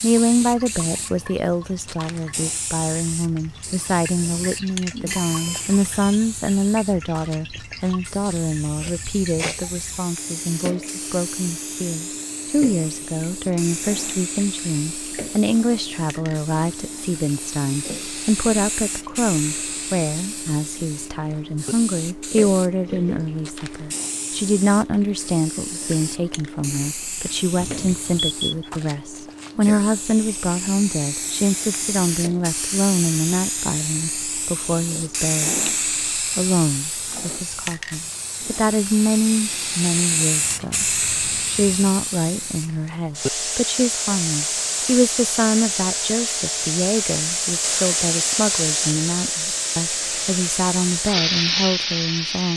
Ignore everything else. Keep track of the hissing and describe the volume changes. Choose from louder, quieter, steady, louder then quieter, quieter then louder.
louder.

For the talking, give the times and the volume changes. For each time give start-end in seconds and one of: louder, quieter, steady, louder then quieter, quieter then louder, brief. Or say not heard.
0.0-52.5 steady.